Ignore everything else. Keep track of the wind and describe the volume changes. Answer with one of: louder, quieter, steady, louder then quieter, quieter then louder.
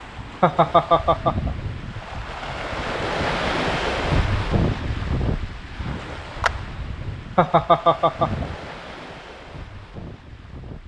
louder then quieter.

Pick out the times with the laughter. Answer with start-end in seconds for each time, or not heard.
0.4-1.6, 7.3-8.6.